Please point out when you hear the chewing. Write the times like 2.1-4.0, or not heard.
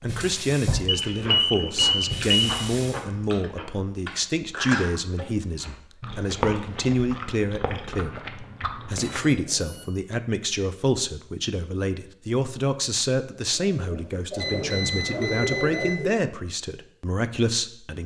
0.9-9.2.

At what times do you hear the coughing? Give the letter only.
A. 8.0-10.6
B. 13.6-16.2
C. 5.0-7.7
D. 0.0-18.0
B.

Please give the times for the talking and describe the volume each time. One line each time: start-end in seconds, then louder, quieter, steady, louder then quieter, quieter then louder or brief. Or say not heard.
0.0-18.0 steady.